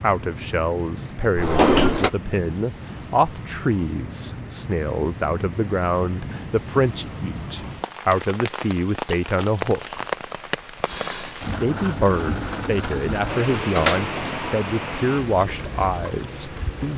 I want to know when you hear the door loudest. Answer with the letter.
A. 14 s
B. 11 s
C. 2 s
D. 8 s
C.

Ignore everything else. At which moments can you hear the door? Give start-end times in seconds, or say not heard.
1.4-2.1, 13.1-14.6.